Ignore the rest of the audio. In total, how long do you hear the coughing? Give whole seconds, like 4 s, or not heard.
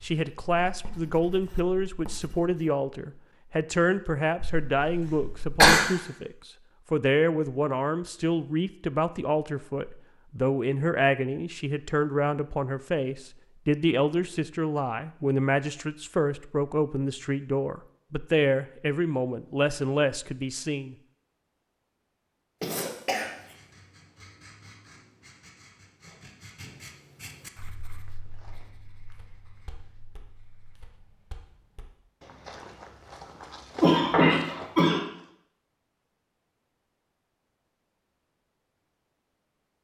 4 s.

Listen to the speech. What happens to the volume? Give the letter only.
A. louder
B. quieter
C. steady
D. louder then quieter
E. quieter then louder
C.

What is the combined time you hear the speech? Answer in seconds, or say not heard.
21 s.